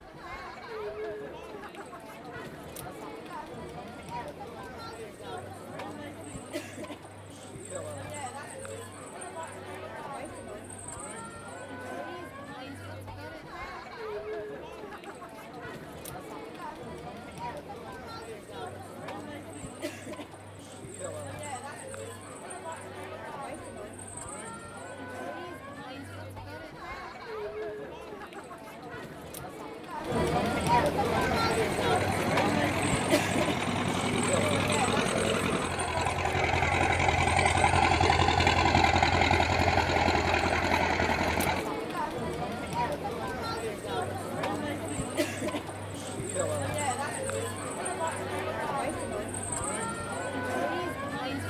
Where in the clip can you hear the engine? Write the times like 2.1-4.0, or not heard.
31.0-41.6.